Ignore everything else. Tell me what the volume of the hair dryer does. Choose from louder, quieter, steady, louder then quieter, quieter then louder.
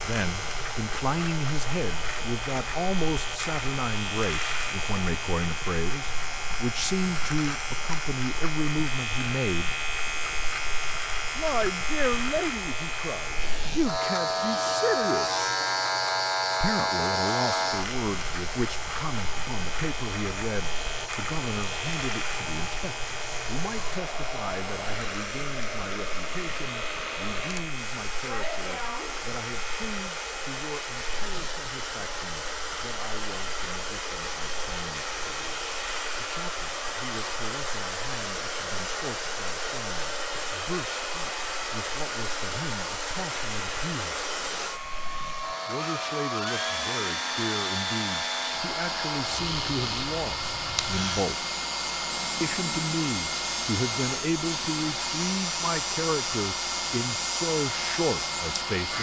louder.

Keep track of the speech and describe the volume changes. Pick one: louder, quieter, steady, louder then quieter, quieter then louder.
quieter then louder.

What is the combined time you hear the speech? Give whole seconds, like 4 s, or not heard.
54 s.